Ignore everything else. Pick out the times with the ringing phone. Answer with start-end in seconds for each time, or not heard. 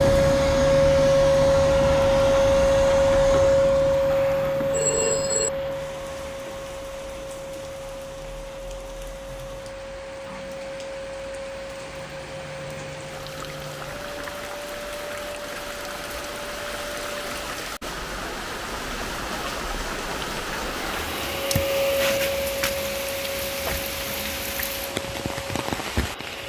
4.1-5.5.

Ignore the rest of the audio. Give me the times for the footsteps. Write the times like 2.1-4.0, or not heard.
not heard.